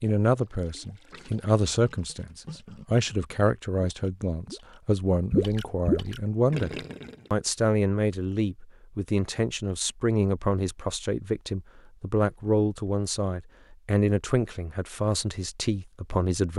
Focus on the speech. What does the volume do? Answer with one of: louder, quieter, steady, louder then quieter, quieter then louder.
steady.